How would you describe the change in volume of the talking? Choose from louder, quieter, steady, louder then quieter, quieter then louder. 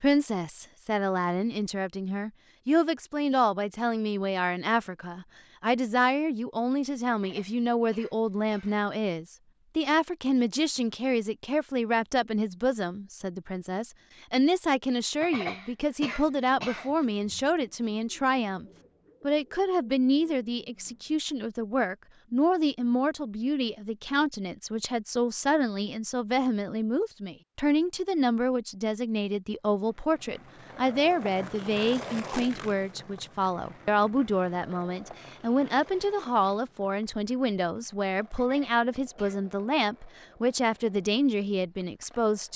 steady.